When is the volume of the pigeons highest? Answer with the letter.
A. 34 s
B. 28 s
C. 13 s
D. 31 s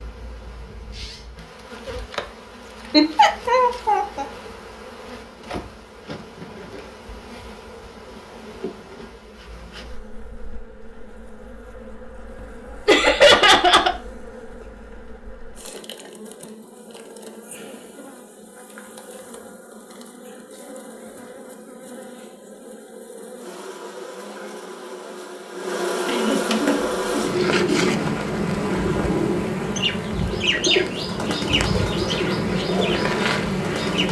D.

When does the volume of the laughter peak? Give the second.
13 s.